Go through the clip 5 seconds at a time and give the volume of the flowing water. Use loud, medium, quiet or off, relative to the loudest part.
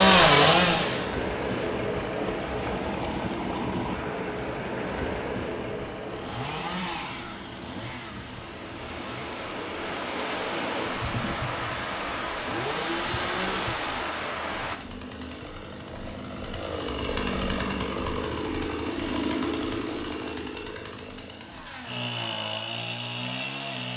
loud, medium, loud, off, off.